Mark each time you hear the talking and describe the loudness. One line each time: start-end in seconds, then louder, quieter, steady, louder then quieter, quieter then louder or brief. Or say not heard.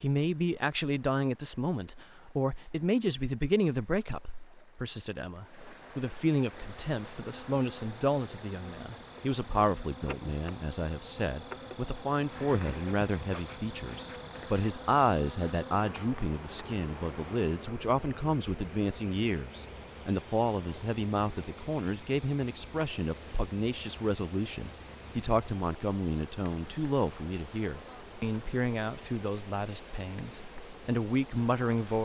0.0-32.0 steady.